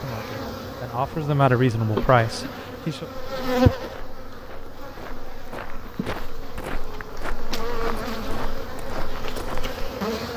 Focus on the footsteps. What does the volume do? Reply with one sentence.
The loudness of the footsteps goes up.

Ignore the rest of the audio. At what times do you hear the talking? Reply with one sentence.
The talking can be heard from 0.0 to 3.0 s.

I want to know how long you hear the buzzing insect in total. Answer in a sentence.
You can hear the buzzing insect for 10 seconds altogether.